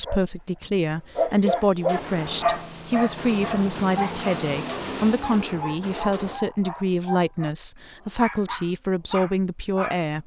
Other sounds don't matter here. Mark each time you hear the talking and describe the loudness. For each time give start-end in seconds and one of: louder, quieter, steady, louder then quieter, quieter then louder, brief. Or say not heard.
0.0-10.2 steady.